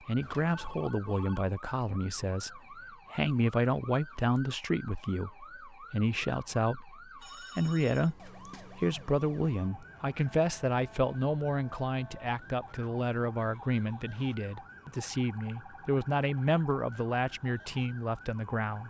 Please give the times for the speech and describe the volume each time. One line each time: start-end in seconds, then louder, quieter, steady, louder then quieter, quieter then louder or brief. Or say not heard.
0.1-18.8 steady.